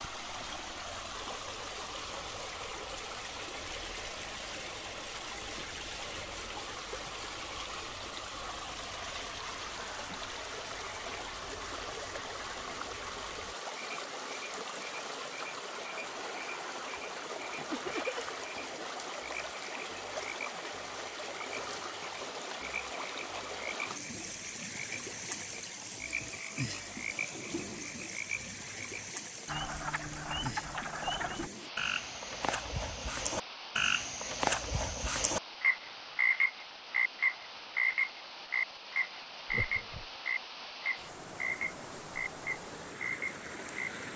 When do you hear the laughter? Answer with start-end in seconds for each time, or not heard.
17.7-18.3, 39.5-40.1.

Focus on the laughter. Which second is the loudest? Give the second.
18 s.